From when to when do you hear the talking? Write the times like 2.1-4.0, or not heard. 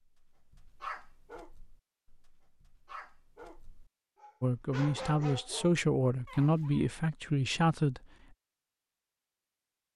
4.4-8.0.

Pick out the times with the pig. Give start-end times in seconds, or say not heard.
not heard.